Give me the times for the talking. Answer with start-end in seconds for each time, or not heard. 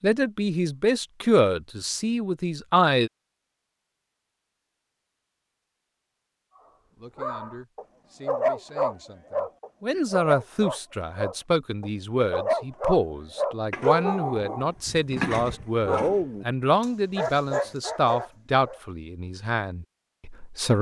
0.0-3.1, 7.0-20.7.